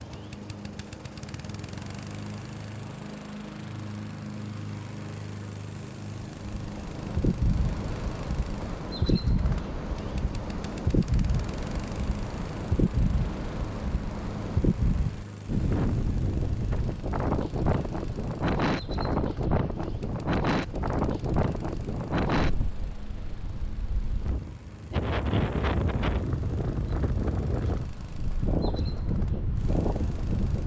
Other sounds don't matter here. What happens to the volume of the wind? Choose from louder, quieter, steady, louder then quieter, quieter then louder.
steady.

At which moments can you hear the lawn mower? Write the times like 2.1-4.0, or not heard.
0.0-30.6.